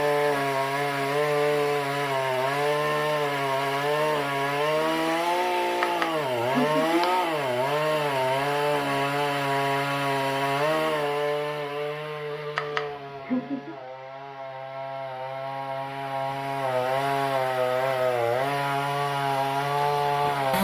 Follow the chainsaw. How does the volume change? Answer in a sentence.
The loudness of the chainsaw goes down, then up.